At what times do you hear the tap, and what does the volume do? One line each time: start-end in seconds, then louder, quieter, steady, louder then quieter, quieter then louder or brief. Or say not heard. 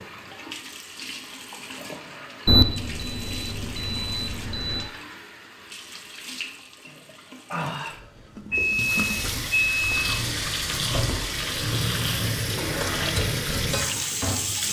0.0-14.6 louder.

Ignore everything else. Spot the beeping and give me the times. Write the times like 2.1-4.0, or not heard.
2.5-4.8, 8.5-10.1.